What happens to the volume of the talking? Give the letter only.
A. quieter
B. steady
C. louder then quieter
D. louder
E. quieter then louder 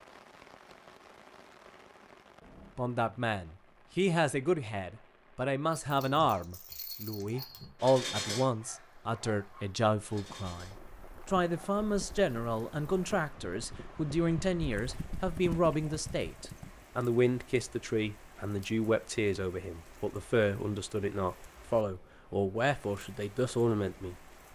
B.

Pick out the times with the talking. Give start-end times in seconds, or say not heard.
2.8-24.1.